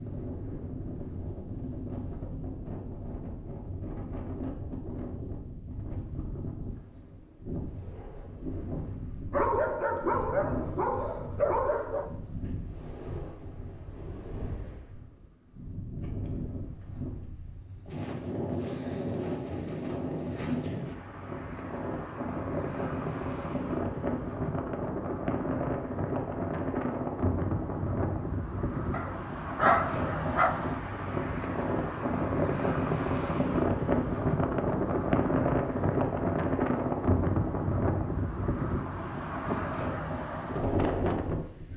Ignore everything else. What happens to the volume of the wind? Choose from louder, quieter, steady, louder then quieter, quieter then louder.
louder.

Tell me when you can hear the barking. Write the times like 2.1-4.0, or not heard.
9.3-12.1, 28.9-30.6.